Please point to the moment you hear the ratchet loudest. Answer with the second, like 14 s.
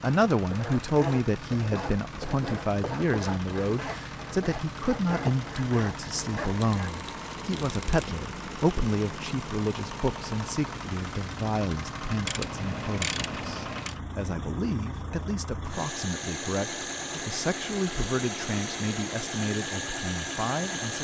13 s.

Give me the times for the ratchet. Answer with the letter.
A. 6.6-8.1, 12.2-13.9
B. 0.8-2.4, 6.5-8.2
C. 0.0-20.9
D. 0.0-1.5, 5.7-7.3
A.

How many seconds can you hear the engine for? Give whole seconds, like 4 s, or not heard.
21 s.